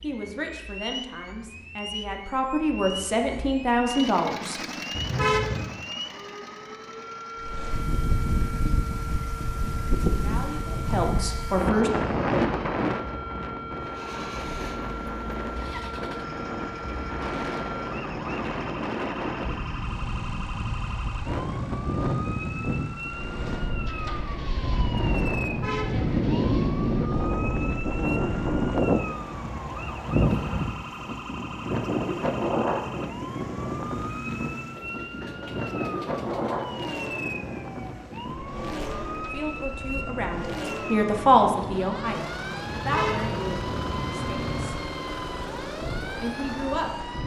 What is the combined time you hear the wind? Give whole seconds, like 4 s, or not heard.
40 s.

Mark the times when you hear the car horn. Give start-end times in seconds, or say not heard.
4.9-5.7, 25.4-26.1, 42.7-44.7.